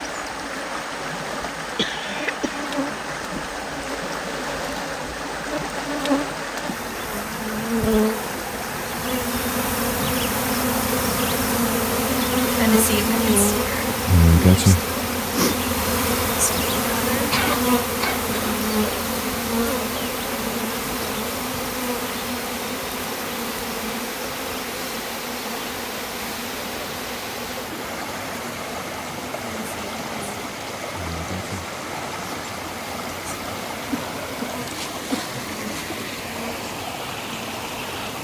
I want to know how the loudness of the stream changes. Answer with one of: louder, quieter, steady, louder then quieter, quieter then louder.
steady.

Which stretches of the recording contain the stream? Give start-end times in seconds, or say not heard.
0.0-38.2.